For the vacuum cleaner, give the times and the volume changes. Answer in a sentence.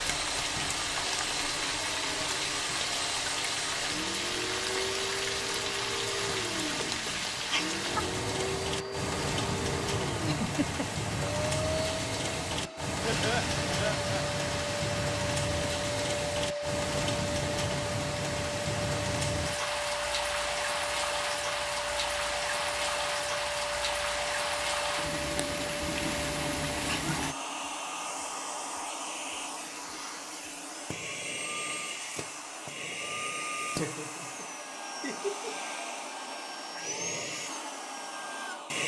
The vacuum cleaner can be heard from 0.0 to 38.8 s, at a steady volume.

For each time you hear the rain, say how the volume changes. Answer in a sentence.
The rain can be heard from 0.0 to 27.4 s, at a steady volume.